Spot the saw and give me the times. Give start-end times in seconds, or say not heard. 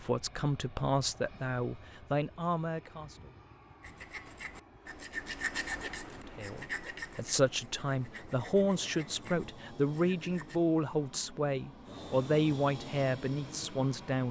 3.8-10.6.